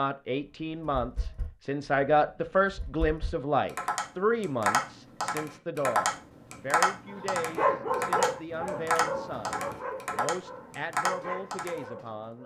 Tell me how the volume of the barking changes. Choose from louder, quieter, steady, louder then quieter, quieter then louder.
quieter then louder.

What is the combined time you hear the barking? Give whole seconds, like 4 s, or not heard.
5 s.